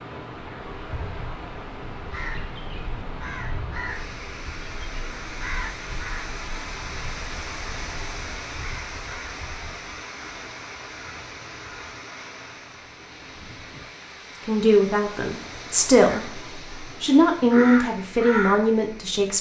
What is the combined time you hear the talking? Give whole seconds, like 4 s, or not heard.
5 s.